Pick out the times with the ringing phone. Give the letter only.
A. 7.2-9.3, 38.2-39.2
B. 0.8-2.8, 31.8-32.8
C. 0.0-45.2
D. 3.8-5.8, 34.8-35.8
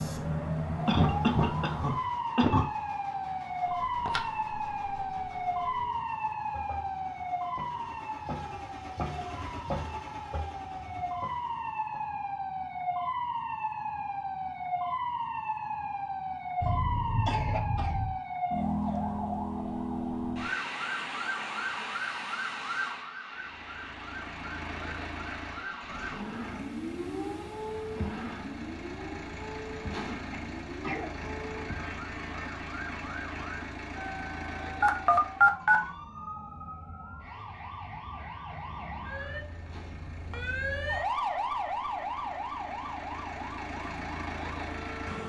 D.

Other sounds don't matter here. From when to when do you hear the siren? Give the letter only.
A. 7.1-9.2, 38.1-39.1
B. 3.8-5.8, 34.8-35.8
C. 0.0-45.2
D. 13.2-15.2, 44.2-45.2
C.